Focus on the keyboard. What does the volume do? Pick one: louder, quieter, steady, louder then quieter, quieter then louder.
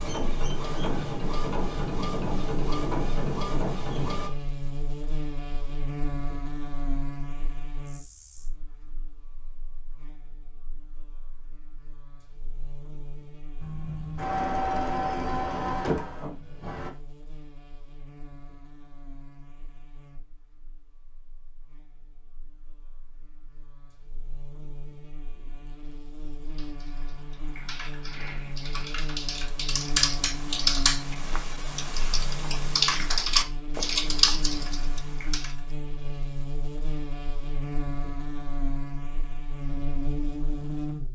louder.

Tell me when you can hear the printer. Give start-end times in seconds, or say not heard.
0.0-4.3, 13.6-16.9.